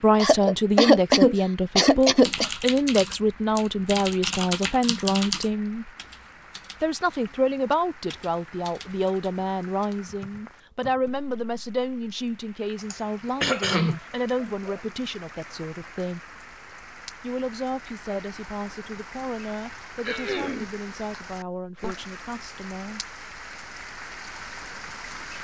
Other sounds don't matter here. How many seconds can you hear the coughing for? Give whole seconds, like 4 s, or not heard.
5 s.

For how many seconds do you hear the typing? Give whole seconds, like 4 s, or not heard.
9 s.